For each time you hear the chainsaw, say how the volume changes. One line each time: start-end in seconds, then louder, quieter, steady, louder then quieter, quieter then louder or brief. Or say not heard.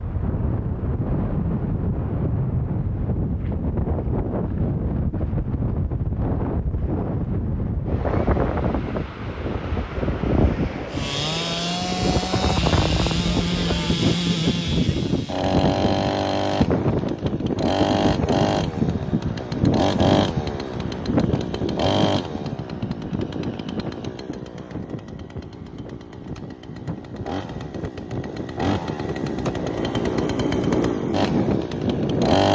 10.9-32.5 quieter then louder.